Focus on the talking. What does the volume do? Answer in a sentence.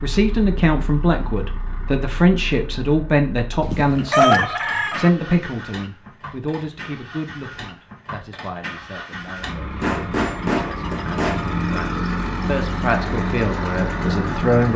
The loudness of the talking goes down, then up.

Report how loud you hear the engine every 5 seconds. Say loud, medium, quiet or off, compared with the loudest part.
quiet, medium, loud.